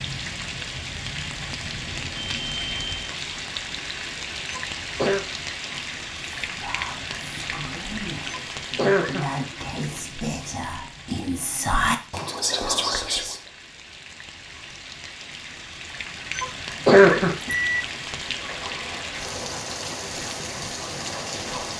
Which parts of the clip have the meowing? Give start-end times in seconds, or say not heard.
not heard.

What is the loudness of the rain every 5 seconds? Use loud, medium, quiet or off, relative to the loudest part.
loud, loud, medium, loud, loud.